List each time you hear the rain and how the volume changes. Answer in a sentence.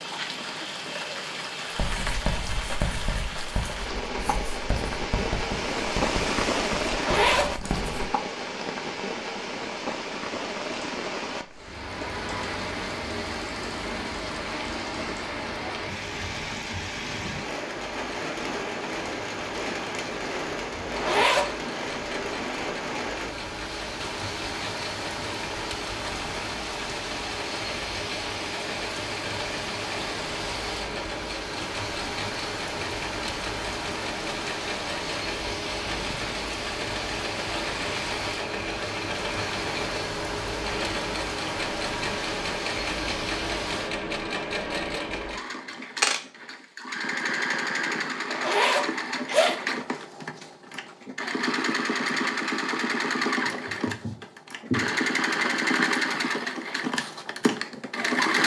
The rain can be heard from 0.0 to 44.0 s, at a steady volume.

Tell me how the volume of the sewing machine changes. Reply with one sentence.
The volume of the sewing machine goes up.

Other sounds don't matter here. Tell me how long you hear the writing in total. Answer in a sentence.
The writing can be heard for 6 seconds in total.